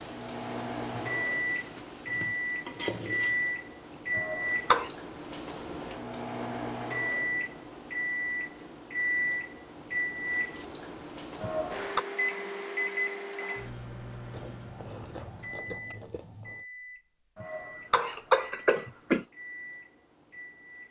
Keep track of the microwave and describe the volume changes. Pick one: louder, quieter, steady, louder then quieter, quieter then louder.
quieter.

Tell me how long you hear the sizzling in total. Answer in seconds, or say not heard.
4 s.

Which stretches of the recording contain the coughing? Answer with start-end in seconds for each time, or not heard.
4.2-4.9, 11.4-12.1, 17.4-19.2.